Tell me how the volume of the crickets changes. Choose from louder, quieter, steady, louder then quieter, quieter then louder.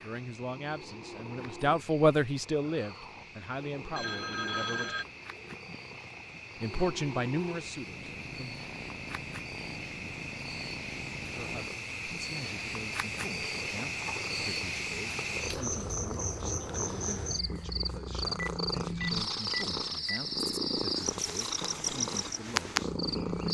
louder.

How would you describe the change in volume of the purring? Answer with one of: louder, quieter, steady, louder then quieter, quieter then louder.
louder.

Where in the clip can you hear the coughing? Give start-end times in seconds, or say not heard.
not heard.